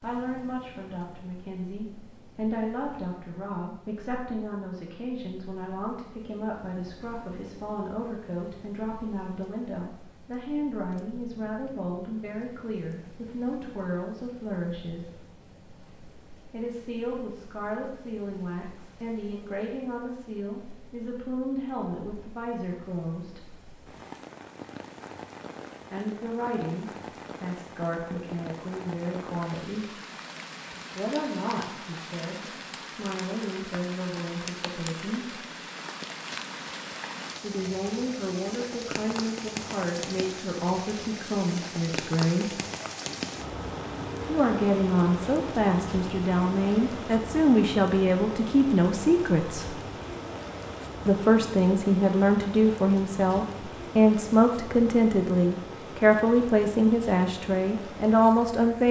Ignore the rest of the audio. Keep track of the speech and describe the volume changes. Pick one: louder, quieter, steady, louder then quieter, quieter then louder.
louder.